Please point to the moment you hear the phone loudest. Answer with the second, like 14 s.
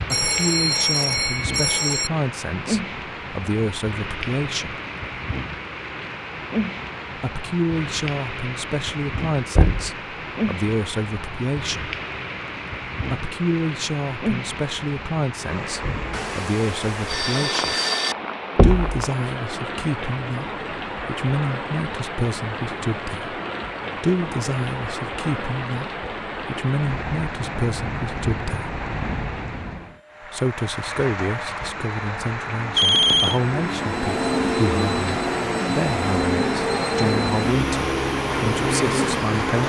33 s.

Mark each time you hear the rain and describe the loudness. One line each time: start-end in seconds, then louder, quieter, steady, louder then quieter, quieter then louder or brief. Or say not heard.
0.0-39.6 steady.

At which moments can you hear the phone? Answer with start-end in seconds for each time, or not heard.
0.1-2.1, 16.1-18.1, 32.8-33.4.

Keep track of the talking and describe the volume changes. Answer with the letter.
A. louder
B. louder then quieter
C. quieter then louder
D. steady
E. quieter
D.